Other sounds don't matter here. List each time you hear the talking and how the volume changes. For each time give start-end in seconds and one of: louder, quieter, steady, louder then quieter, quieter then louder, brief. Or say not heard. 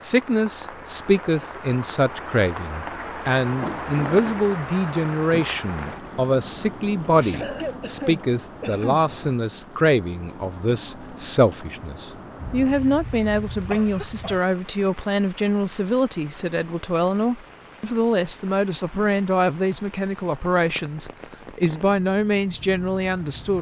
0.0-23.5 steady.